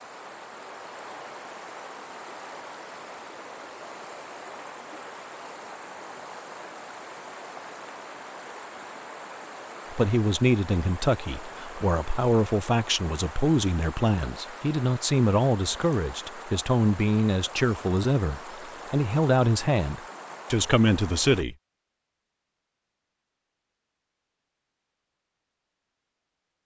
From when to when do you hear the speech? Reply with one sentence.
You can hear the speech from 9.9 to 21.6 s.